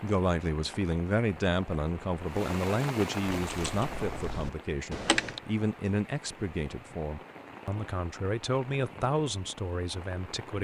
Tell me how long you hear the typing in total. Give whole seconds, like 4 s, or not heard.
2 s.